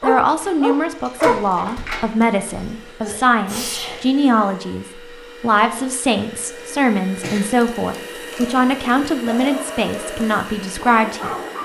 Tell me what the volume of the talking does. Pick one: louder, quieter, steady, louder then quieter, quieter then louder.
steady.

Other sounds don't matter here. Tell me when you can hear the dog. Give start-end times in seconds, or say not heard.
0.0-1.4, 8.3-11.6.